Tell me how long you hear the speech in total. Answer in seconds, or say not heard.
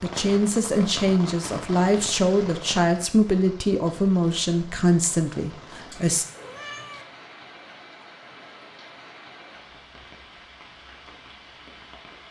6 s.